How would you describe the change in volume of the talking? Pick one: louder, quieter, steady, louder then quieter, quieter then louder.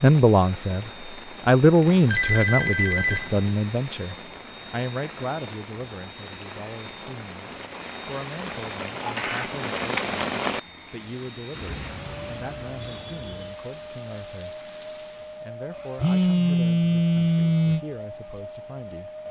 quieter.